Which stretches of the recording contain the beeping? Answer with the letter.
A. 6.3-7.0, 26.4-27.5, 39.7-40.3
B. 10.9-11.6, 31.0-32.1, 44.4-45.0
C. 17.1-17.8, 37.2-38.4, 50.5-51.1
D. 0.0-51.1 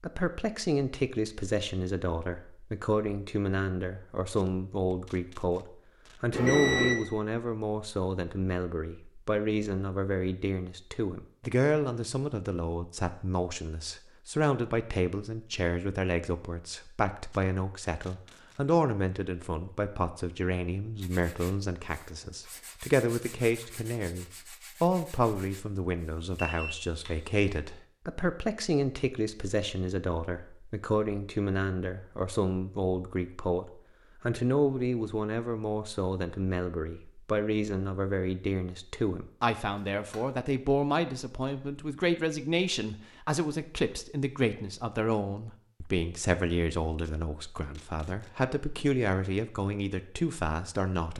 A.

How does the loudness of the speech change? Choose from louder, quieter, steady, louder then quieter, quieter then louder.
steady.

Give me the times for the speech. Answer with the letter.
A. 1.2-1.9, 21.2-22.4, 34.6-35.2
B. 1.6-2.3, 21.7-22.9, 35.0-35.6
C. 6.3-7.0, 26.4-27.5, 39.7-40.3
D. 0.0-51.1
D.